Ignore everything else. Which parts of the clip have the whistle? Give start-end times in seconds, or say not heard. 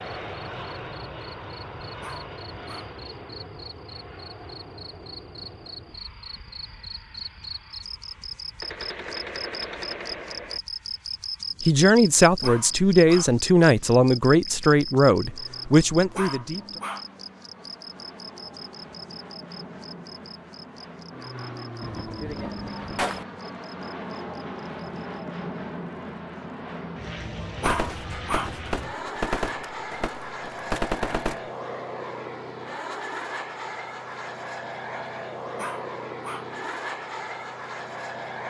not heard.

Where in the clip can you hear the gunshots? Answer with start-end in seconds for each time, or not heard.
8.6-10.6, 21.8-23.2, 27.6-31.5.